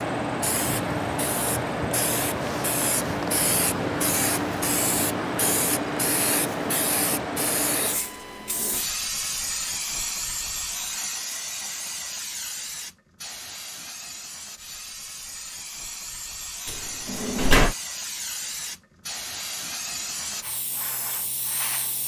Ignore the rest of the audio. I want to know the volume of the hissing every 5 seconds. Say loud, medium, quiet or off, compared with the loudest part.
loud, loud, medium, medium, medium.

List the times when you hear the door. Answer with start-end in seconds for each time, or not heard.
16.6-17.8.